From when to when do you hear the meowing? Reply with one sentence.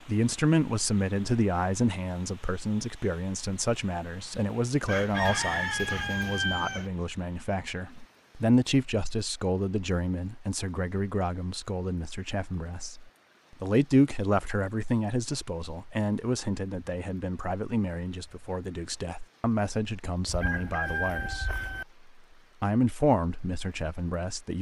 The meowing can't be heard in this clip.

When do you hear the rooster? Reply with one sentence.
The rooster can be heard from 4.8 to 6.9 s and from 20.2 to 21.9 s.